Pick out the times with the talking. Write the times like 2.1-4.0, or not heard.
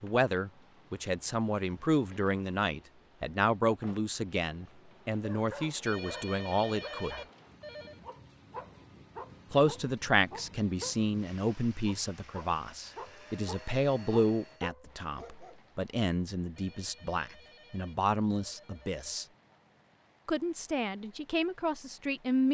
0.0-7.2, 9.5-19.2, 20.2-22.4.